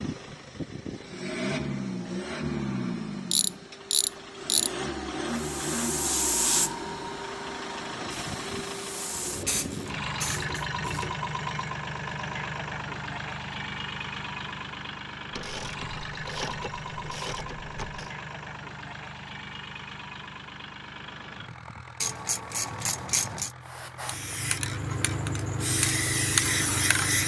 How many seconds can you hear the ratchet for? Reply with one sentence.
The ratchet can be heard for 8 seconds in total.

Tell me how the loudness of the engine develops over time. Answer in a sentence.
The volume of the engine goes down.